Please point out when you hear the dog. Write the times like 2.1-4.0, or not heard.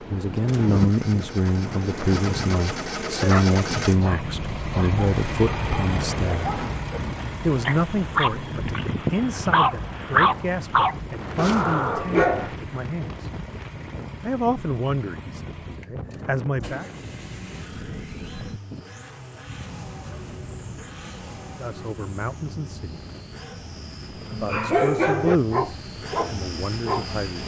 3.0-12.5, 24.3-27.4.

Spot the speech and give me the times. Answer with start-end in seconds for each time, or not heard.
0.0-6.5, 7.4-13.4, 14.2-16.9, 21.6-22.9, 24.3-27.4.